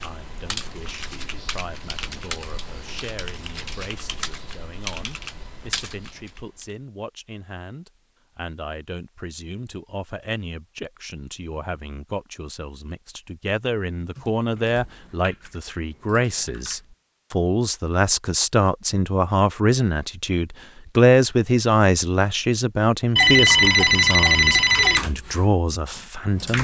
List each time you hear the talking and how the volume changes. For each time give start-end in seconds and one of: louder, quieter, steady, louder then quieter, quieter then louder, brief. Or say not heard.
0.0-26.6 louder.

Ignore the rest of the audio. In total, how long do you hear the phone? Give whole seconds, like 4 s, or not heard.
2 s.